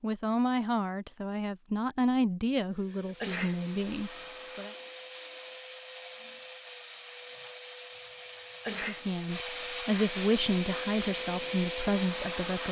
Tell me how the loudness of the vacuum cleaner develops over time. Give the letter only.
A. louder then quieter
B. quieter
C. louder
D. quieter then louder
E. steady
C.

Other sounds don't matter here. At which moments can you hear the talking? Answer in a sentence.
You can hear the talking from 0.0 to 4.7 s and from 8.7 to 12.6 s.